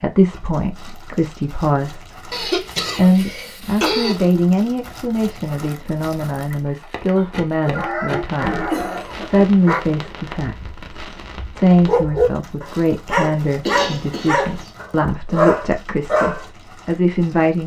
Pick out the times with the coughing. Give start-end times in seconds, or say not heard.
2.3-4.2, 8.7-9.3, 13.6-14.7.